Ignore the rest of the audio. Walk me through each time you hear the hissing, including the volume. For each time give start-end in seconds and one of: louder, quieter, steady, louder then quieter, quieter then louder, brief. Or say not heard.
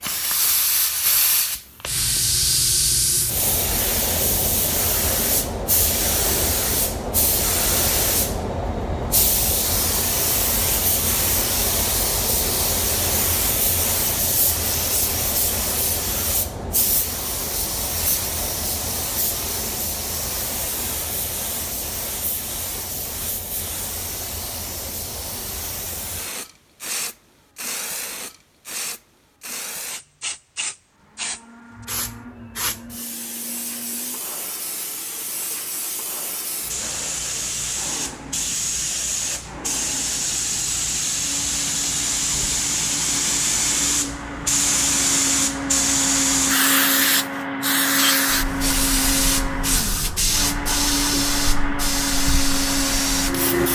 0.0-53.7 quieter then louder.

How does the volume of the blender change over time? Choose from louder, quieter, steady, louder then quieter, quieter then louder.
louder.